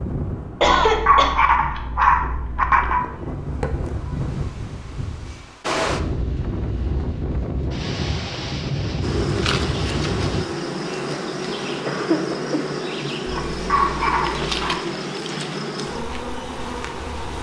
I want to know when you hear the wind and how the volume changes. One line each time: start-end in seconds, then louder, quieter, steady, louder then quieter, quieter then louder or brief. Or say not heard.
0.0-10.4 louder.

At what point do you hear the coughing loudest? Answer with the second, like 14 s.
1 s.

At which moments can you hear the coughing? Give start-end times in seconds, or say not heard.
0.6-1.4, 11.1-12.7.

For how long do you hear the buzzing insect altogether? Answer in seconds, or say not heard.
8 s.